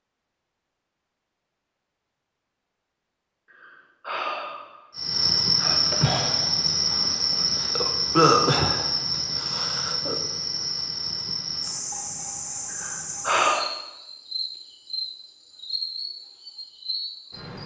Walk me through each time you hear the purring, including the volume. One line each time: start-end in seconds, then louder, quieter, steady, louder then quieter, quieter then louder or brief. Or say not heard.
not heard.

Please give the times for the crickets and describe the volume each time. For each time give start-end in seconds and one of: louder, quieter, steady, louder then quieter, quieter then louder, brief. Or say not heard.
5.0-17.6 quieter.